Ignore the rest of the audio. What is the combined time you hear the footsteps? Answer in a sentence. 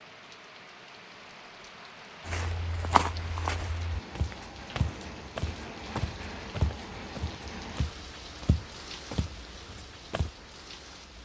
The footsteps can be heard for 8 seconds in total.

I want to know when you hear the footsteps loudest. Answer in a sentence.
The loudest moment of the footsteps is at 3 seconds.